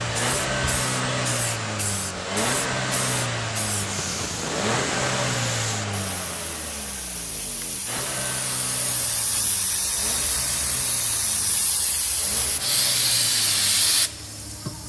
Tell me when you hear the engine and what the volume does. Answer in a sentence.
The engine can be heard from 0.0 to 14.8 s, getting quieter.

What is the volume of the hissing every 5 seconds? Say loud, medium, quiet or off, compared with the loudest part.
medium, medium, loud.